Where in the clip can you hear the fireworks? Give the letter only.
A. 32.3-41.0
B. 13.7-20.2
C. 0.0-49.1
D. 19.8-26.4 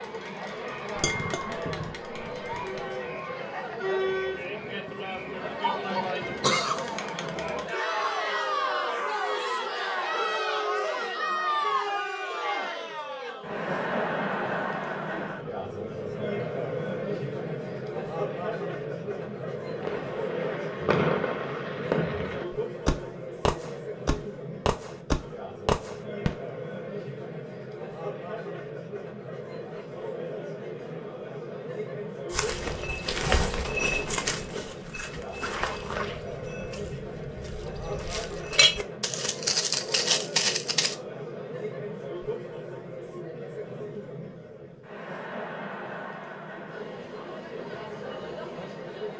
D.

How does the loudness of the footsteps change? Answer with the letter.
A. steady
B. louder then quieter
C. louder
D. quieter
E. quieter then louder
E.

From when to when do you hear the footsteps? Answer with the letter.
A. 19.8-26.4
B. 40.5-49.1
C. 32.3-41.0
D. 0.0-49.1
C.